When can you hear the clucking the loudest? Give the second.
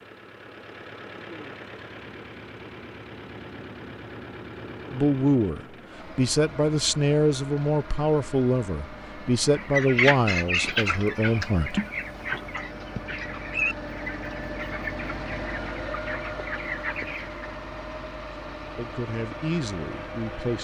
10 s.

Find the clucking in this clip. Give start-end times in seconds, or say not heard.
9.5-17.4.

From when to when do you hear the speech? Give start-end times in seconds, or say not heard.
4.9-11.8, 18.8-20.5.